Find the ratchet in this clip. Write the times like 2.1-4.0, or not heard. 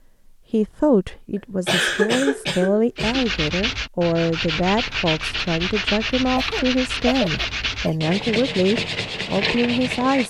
not heard.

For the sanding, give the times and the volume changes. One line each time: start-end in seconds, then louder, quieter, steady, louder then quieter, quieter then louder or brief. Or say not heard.
3.0-10.2 steady.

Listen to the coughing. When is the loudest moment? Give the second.
2 s.